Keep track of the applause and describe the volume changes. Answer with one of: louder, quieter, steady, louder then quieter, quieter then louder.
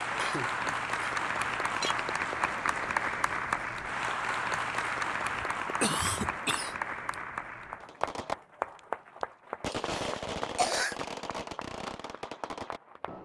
quieter.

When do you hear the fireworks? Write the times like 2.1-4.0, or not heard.
7.8-13.2.